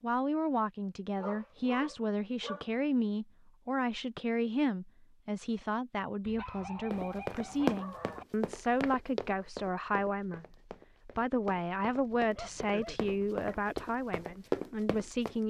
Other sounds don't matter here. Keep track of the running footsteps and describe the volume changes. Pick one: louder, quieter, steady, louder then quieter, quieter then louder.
quieter then louder.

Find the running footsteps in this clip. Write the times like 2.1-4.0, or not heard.
6.9-15.4.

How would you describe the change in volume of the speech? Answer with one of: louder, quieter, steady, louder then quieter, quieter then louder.
steady.